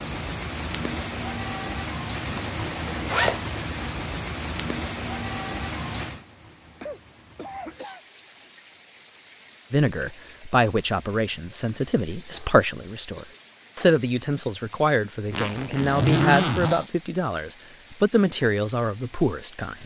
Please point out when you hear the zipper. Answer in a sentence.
You can hear the zipper from 2.4 to 3.5 s and from 15.3 to 16.9 s.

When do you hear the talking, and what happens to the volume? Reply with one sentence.
The talking can be heard from 9.7 to 19.8 s, at a steady volume.